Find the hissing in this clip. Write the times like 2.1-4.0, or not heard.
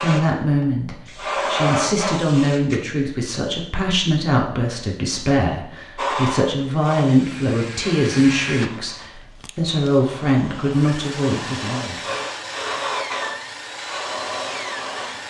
0.0-2.8, 6.0-15.2.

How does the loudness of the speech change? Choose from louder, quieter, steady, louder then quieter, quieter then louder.
steady.